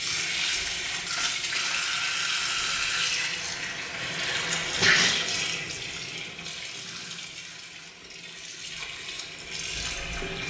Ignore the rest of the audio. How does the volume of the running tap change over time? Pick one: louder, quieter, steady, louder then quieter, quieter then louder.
quieter.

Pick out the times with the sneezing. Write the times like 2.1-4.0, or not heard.
3.8-5.2.